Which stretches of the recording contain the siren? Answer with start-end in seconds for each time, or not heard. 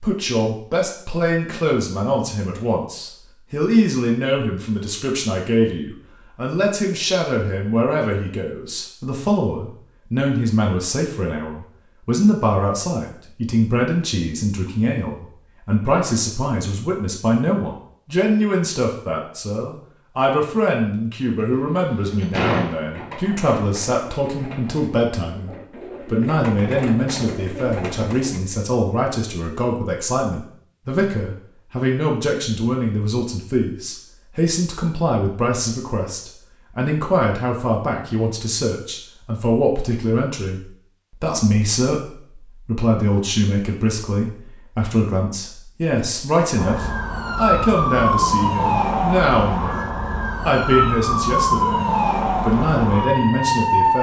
46.5-53.9.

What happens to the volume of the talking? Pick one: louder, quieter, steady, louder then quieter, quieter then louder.
steady.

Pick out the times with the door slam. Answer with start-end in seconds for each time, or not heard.
21.4-23.2.